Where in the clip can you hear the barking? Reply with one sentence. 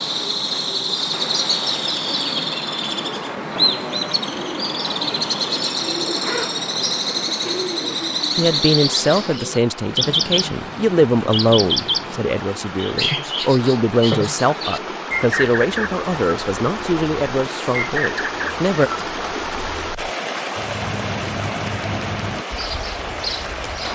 The barking can't be heard in this clip.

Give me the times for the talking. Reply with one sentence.
The talking can be heard from 8.3 to 18.9 s.